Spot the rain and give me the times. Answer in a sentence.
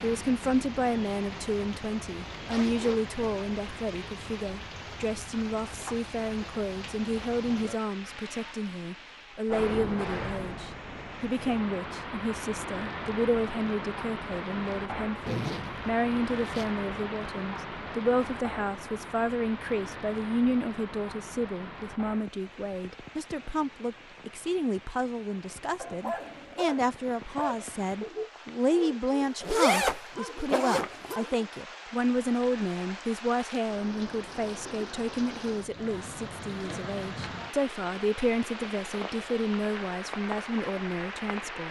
The rain can be heard from 0.0 to 41.6 s.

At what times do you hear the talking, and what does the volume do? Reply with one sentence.
The talking can be heard from 0.0 to 41.6 s, at a steady volume.